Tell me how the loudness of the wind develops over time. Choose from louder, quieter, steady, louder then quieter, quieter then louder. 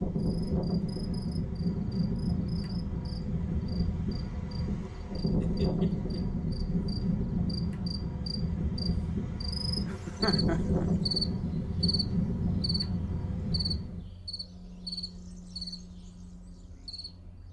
steady.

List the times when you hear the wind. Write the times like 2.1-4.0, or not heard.
0.0-14.1.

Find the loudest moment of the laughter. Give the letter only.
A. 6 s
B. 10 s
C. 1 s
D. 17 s
B.